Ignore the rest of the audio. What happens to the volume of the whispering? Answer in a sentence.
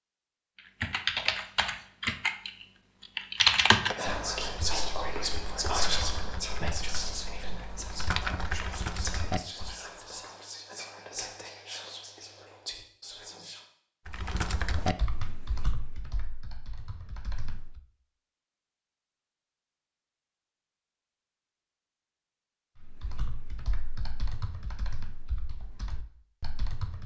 The volume of the whispering goes down.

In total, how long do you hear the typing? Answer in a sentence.
The typing can be heard for 17 seconds in total.